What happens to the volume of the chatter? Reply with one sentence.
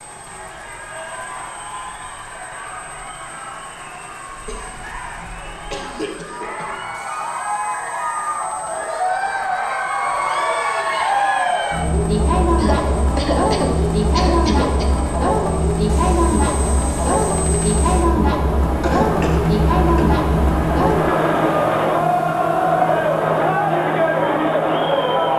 The volume of the chatter goes up.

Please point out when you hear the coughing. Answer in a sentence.
The coughing can be heard from 4.2 to 6.8 s, from 12.6 to 14.8 s and from 18.8 to 20.1 s.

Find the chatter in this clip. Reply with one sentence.
You can hear the chatter from 0.0 to 25.3 s.